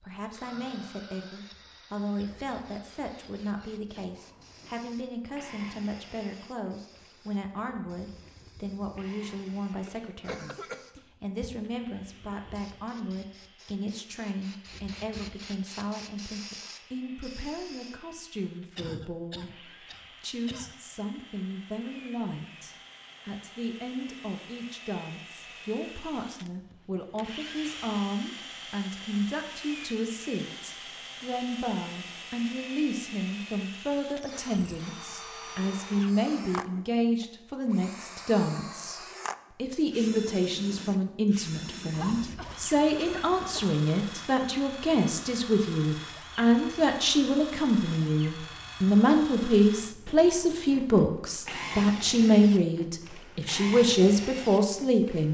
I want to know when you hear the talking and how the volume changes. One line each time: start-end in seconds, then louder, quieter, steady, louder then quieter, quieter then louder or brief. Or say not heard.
0.0-55.3 louder.